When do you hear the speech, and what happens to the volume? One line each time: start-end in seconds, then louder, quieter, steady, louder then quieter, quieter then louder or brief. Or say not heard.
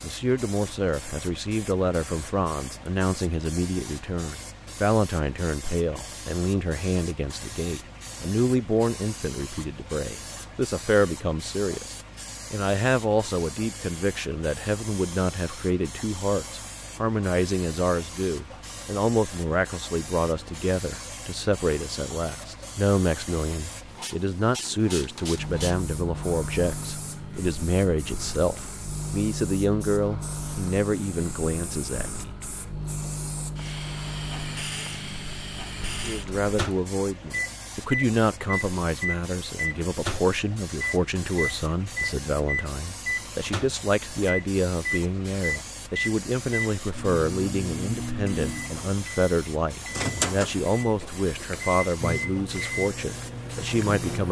0.0-32.4 steady
36.0-54.2 steady.